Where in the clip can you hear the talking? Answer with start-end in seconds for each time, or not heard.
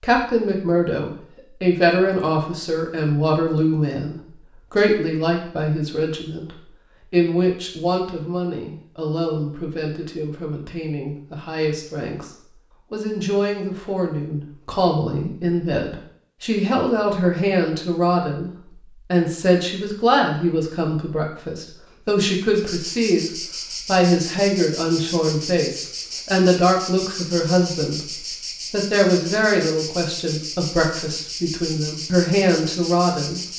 0.0-33.4.